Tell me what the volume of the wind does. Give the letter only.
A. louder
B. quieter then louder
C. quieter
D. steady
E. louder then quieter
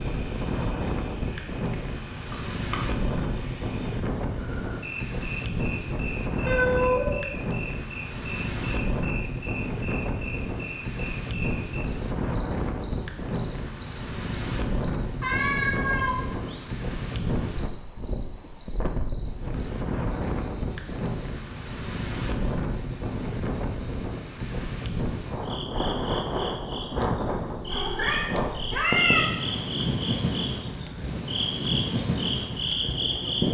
D.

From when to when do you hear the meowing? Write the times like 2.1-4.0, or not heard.
6.5-7.2, 15.2-16.6, 27.7-29.2.